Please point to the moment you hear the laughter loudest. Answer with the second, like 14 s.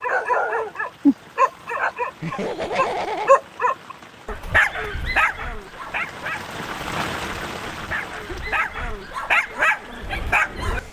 3 s.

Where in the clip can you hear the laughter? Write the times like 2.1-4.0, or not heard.
2.2-3.3, 8.2-8.7.